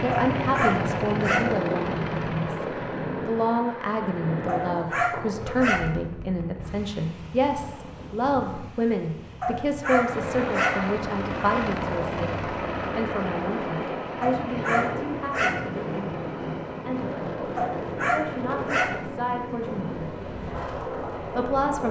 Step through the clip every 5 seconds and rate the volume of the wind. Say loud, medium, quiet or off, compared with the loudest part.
loud, medium, loud, loud, loud.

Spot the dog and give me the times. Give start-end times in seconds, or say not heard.
0.1-1.6, 4.5-6.0, 9.4-10.9, 14.2-15.7, 17.6-19.1.